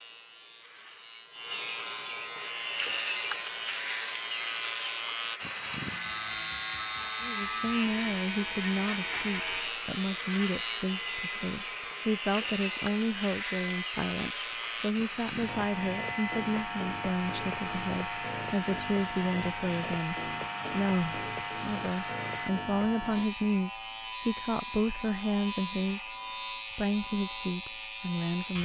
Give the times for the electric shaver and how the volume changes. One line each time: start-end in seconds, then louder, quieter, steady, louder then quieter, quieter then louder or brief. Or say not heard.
0.0-28.5 steady.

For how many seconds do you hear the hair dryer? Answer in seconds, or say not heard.
20 s.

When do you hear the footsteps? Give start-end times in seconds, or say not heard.
not heard.